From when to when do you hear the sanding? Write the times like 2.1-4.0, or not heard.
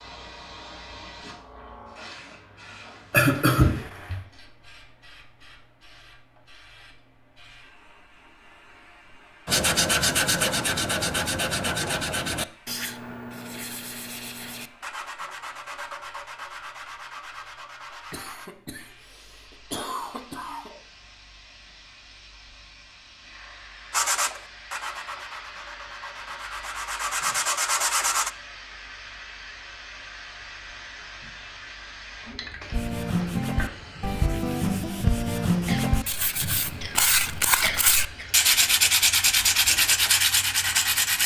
9.4-18.5, 23.9-28.3, 32.7-41.2.